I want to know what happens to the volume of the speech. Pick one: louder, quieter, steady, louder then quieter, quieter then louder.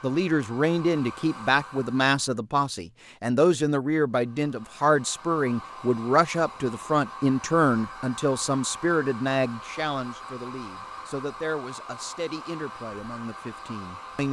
quieter.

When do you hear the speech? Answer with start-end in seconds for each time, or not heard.
0.0-14.2.